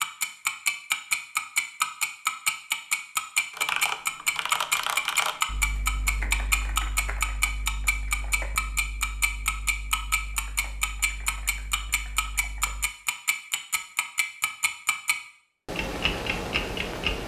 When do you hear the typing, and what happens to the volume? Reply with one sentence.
The typing can be heard from 3.5 to 12.9 s, getting quieter.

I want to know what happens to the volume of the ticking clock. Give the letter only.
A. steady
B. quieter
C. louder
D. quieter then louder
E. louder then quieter
B.